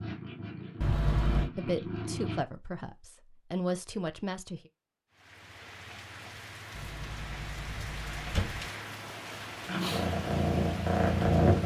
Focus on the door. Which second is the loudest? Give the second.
1 s.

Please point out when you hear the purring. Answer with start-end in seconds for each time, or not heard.
0.0-2.5, 9.7-11.6.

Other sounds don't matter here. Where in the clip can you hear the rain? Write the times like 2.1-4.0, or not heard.
5.1-11.6.